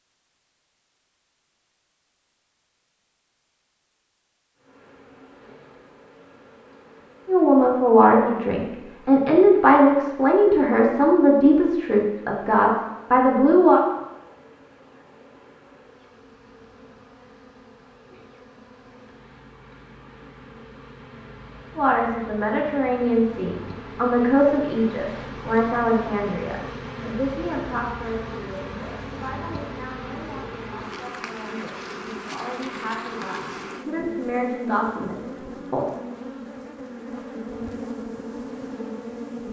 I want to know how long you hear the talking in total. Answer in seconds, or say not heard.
21 s.